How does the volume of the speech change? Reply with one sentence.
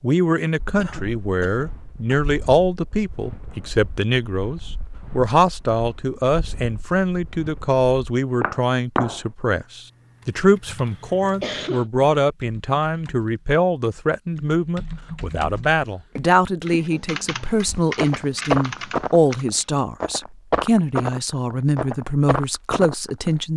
The volume of the speech stays about the same.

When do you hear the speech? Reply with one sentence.
You can hear the speech from 0.0 to 23.5 s.